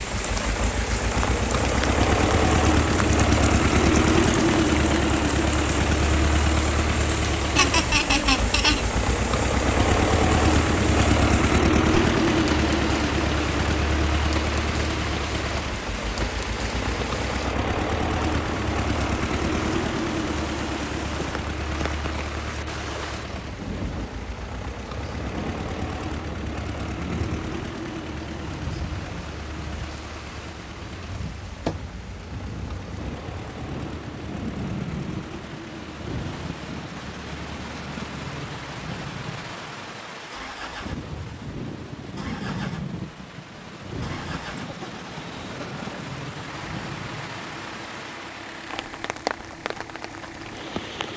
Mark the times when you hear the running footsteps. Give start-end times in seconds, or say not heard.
not heard.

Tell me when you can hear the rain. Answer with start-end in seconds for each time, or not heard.
0.0-51.1.